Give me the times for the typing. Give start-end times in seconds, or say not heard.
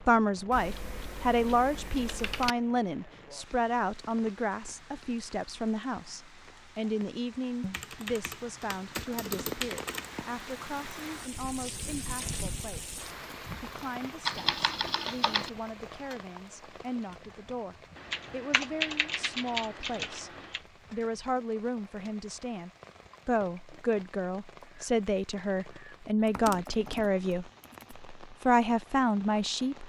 0.5-2.5, 7.6-10.1, 14.2-15.5, 17.9-20.6, 26.2-27.9.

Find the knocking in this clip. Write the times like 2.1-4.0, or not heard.
not heard.